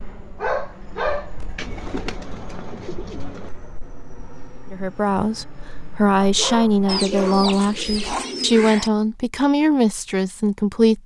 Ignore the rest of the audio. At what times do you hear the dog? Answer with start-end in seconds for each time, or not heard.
0.4-1.3, 6.2-8.9.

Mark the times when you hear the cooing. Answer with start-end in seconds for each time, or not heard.
1.6-3.5, 6.8-8.9.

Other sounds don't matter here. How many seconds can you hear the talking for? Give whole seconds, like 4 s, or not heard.
6 s.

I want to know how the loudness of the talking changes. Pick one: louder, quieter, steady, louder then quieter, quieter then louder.
steady.